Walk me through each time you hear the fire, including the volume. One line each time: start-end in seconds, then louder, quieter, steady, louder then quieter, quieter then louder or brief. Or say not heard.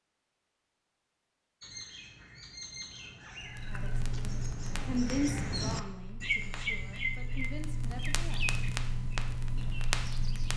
3.5-10.5 quieter then louder.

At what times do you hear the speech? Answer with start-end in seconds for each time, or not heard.
3.6-8.5.